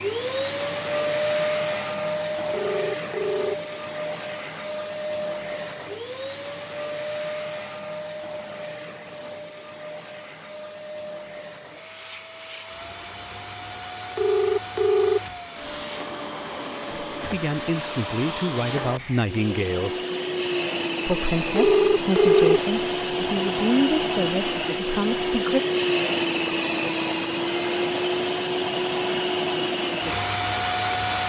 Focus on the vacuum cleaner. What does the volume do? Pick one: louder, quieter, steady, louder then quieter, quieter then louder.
quieter then louder.